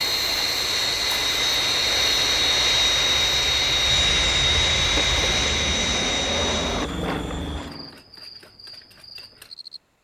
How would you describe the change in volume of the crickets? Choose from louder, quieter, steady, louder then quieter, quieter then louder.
quieter.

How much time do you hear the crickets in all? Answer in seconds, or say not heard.
10 s.